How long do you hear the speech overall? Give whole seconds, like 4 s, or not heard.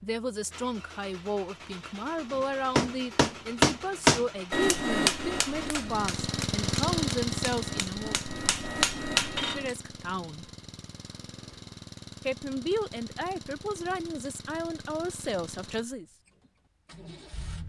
13 s.